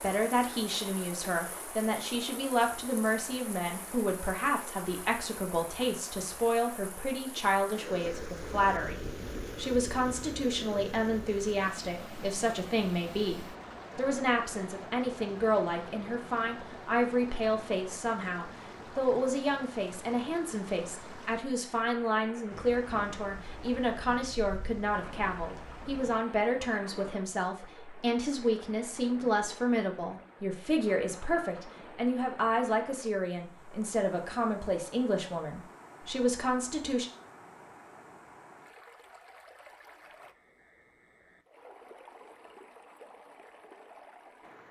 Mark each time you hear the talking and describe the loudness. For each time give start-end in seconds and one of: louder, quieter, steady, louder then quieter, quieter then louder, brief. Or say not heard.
0.0-37.0 steady.